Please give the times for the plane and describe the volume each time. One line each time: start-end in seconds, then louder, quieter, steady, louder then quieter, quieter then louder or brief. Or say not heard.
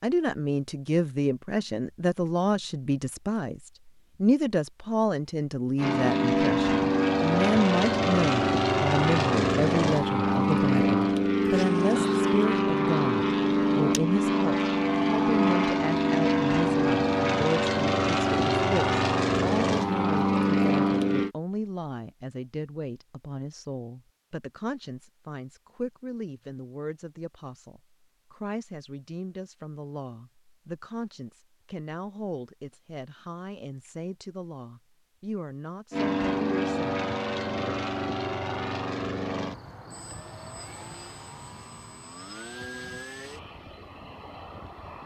5.8-21.3 steady
35.9-45.0 quieter.